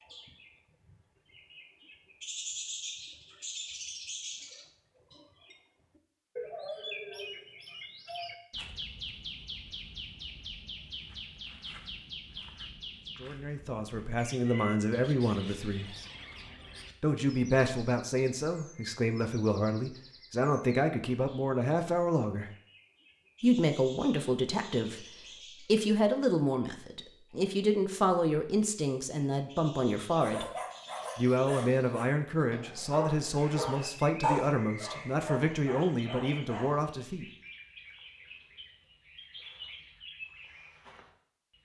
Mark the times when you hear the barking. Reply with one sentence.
You can hear the barking from 30.2 to 36.8 s.